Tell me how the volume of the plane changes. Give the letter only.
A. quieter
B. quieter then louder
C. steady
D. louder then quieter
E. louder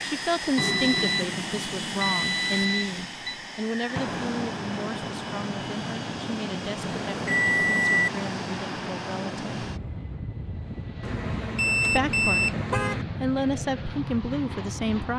C.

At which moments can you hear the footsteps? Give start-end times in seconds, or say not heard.
not heard.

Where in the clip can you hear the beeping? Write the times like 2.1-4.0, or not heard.
0.6-3.4, 6.8-8.1, 11.0-13.1.